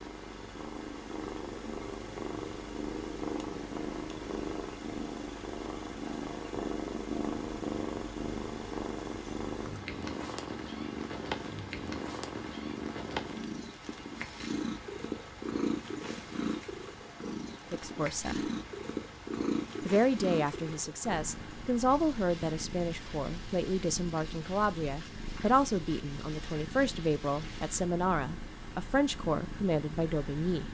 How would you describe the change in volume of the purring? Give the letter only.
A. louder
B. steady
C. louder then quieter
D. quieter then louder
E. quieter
E.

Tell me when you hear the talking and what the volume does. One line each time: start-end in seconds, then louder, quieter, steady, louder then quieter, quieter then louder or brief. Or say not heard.
17.7-18.4 brief
19.9-30.6 steady.